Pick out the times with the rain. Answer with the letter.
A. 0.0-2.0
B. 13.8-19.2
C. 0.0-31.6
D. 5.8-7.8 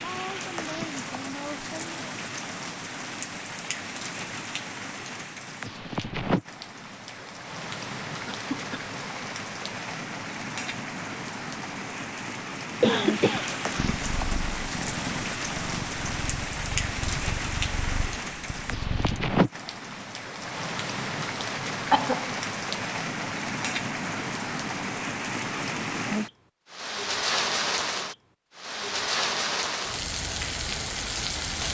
C.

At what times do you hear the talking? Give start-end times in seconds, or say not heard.
0.0-2.0.